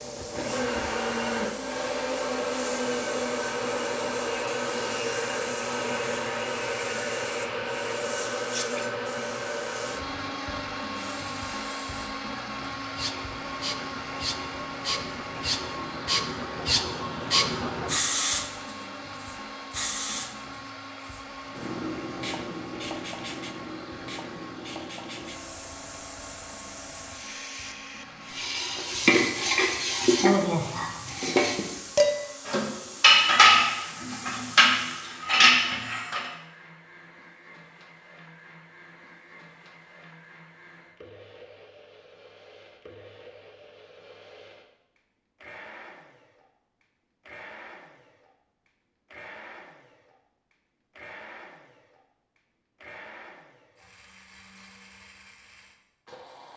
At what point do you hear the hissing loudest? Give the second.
18 s.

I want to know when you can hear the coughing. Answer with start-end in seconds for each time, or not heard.
not heard.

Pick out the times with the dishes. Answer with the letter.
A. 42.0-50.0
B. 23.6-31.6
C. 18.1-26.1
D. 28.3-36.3
D.